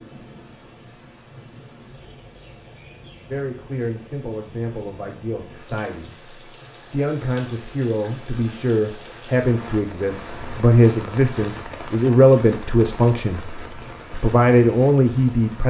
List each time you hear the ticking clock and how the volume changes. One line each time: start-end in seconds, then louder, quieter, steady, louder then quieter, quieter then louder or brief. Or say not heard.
not heard.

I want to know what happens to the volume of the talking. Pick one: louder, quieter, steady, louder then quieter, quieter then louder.
louder.